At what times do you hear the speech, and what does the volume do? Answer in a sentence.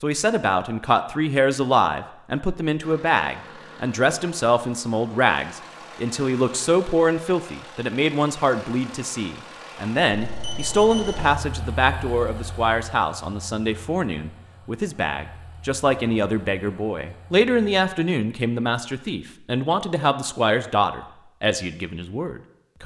You can hear the speech from 0.0 to 22.8 s, at a steady volume.